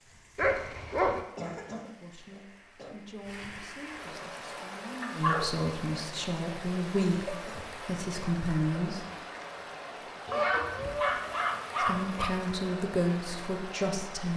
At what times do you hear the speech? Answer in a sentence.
The speech can be heard from 1.9 to 9.1 s and from 11.8 to 14.3 s.